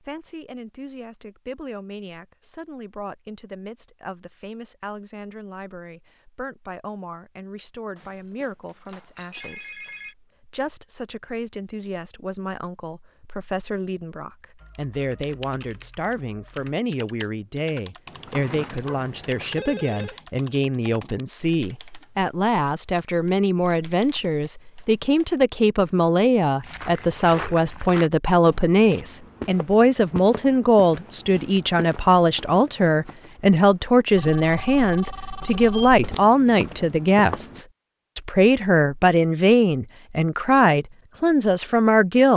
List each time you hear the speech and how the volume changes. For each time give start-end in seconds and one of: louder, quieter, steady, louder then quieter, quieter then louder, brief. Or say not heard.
0.0-42.3 louder.